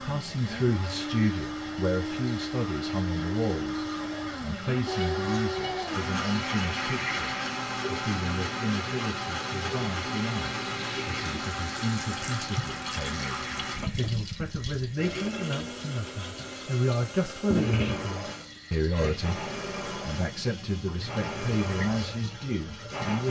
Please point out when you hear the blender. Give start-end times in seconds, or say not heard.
0.0-23.2.